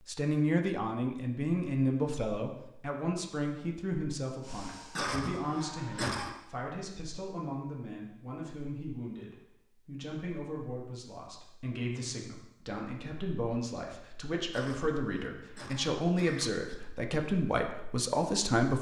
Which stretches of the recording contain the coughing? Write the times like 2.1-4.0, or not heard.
5.0-6.3, 14.5-16.8.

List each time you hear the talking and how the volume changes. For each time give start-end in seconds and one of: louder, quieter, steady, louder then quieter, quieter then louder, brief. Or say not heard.
0.1-18.7 quieter then louder.